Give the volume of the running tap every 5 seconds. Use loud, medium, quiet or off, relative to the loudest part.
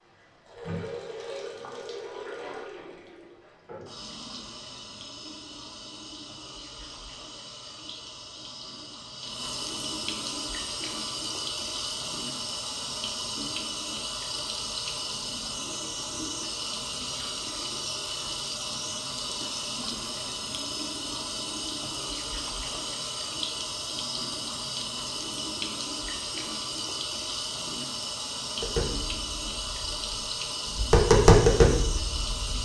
medium, medium, loud, loud, loud, loud, loud.